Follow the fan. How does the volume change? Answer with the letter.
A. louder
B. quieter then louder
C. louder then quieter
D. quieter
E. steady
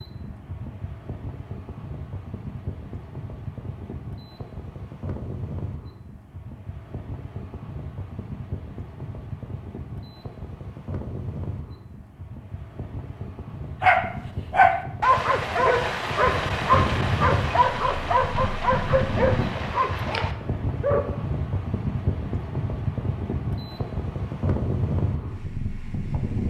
A.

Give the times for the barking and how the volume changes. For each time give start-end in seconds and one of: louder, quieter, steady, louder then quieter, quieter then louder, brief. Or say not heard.
13.8-21.1 quieter.